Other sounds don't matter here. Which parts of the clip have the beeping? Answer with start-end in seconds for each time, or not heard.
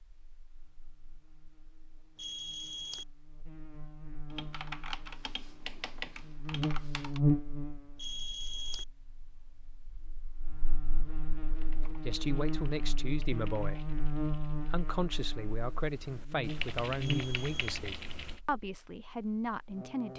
2.1-3.0, 8.0-8.8, 17.0-17.8.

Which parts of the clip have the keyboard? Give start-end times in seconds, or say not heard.
4.3-7.2, 11.5-18.4.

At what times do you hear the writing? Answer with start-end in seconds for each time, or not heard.
not heard.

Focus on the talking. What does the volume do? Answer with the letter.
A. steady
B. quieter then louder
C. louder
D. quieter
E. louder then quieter
A.